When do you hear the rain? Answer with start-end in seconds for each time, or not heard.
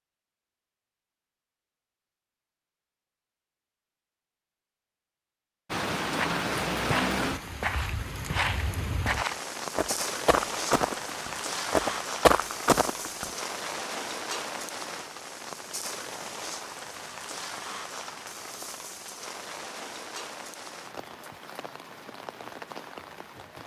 5.7-23.6.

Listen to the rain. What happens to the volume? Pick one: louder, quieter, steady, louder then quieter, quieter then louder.
quieter.